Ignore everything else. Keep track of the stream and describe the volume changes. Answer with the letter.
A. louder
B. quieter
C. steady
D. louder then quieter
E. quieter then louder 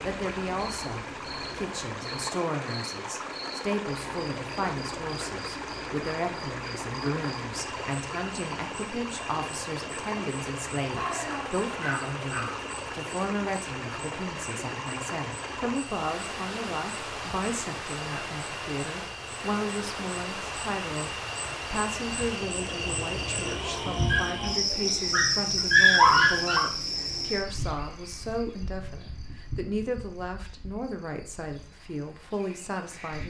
C.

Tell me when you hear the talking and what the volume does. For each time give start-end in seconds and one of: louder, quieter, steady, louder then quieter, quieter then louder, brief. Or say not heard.
0.0-33.2 steady.